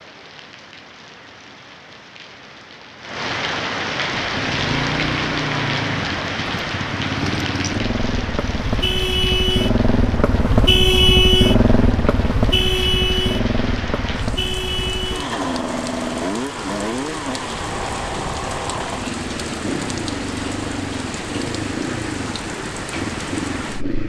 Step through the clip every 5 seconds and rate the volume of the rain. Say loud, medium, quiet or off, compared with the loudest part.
loud, loud, medium, loud, loud.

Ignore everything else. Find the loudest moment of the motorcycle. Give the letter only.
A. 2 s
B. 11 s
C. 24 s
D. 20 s
B.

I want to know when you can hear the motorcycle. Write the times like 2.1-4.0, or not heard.
4.2-24.0.